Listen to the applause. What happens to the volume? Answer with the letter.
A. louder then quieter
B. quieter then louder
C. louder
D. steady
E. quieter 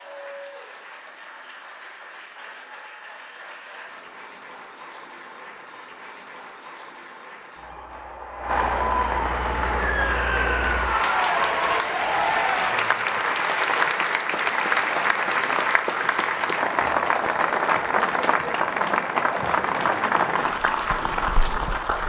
C.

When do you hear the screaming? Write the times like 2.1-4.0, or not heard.
9.8-11.1.